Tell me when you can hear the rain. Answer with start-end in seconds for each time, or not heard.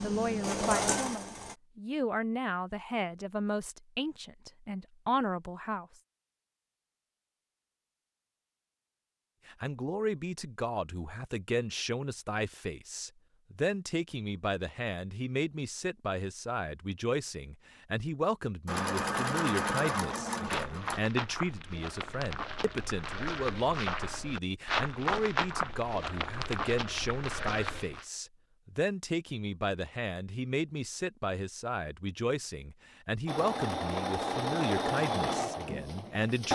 not heard.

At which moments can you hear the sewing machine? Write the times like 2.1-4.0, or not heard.
0.0-1.6, 18.6-21.0, 33.2-36.4.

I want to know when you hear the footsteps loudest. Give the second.
25 s.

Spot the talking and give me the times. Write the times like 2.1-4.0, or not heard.
0.0-5.8, 9.4-36.4.